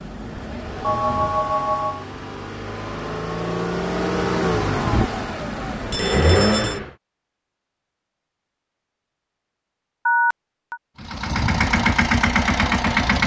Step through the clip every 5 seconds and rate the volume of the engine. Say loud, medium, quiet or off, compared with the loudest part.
medium, loud, loud.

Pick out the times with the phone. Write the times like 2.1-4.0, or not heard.
0.8-2.0, 5.9-6.8, 10.1-10.8.